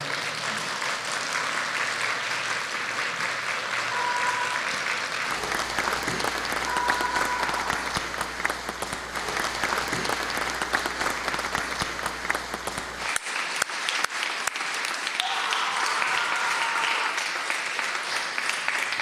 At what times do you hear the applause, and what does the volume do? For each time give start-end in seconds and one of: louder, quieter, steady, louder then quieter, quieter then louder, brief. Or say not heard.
0.0-18.9 steady.